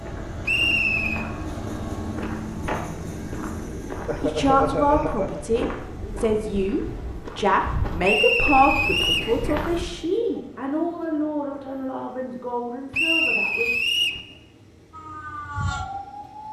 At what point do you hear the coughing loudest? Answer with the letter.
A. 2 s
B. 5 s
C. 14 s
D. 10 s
B.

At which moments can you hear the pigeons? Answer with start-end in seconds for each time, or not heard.
not heard.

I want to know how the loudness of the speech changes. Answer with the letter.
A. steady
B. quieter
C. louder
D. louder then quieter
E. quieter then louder
B.